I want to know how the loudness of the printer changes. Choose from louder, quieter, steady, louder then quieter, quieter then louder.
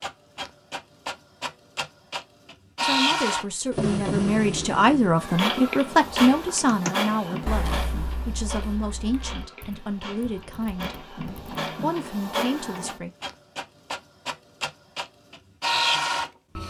quieter then louder.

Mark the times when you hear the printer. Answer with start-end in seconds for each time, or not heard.
0.0-16.6.